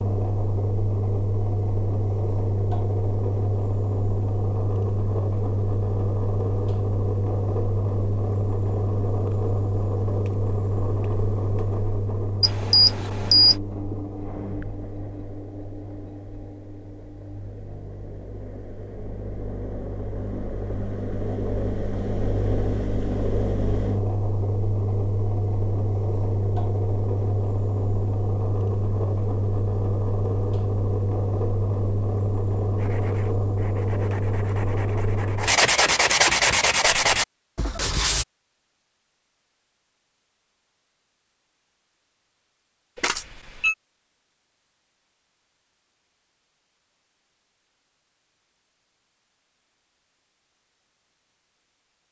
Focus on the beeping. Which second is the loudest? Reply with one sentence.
The loudest moment of the beeping is at 13 seconds.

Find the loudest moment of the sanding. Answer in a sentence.
The loudest moment of the sanding is at 36 seconds.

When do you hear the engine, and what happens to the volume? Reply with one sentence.
You can hear the engine from 0.0 to 35.6 s, getting quieter then louder.